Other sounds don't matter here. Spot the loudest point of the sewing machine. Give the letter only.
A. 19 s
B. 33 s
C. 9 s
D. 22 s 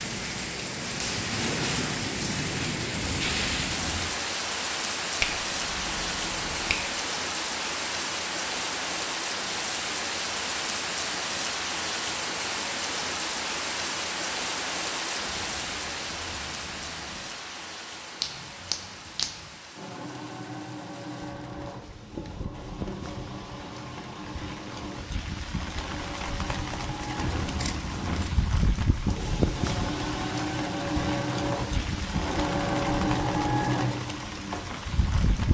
B.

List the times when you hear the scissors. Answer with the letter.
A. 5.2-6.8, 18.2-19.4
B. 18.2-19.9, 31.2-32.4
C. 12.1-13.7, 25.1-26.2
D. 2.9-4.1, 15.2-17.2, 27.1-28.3
D.